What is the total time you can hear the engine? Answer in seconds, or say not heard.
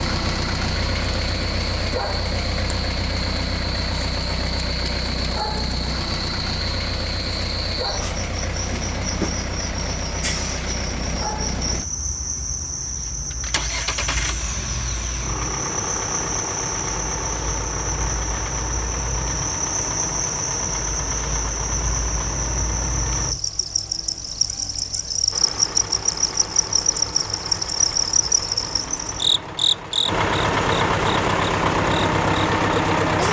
31 s.